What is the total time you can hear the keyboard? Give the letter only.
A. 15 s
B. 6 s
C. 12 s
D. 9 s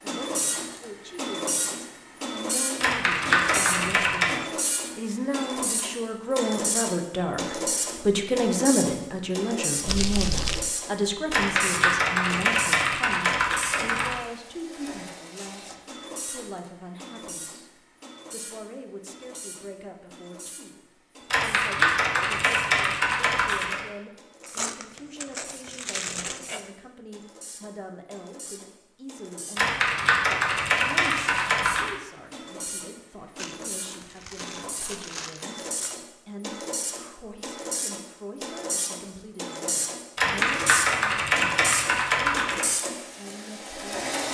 C.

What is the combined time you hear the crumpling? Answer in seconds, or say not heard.
6 s.